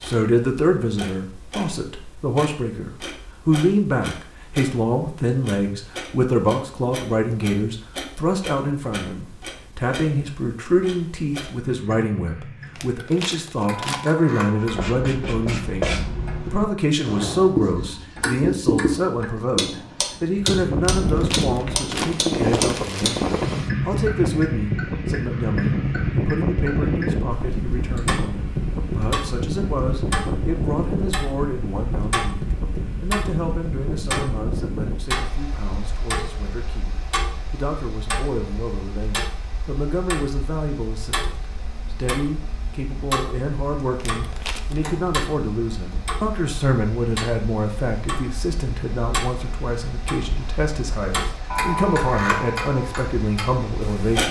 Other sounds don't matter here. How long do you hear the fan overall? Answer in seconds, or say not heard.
34 s.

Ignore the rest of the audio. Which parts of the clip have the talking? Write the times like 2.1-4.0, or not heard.
0.0-54.2.